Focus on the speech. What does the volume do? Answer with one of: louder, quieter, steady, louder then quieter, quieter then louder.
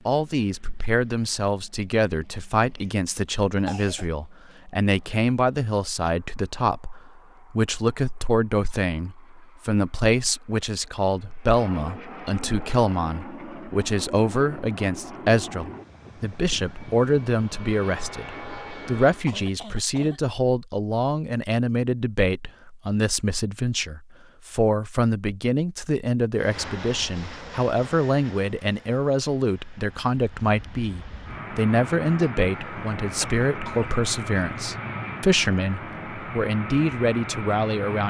steady.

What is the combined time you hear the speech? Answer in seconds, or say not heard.
38 s.